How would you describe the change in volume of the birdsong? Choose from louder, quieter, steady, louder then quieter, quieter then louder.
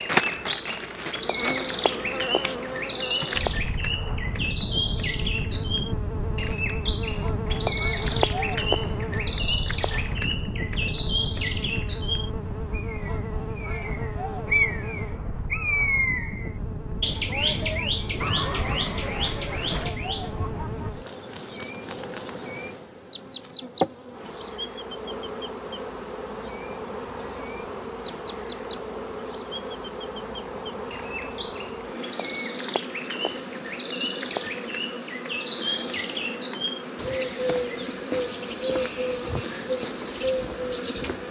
quieter then louder.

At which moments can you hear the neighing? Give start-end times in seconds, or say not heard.
18.2-19.9.